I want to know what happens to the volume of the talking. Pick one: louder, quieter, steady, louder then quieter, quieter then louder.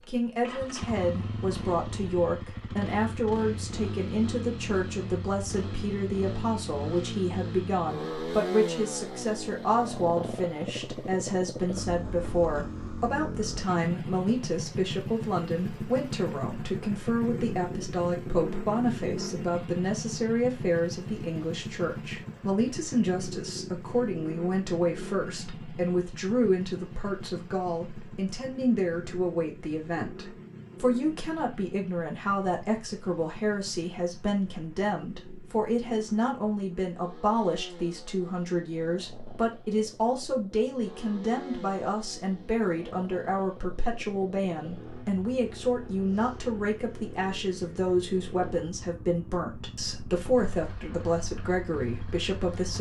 steady.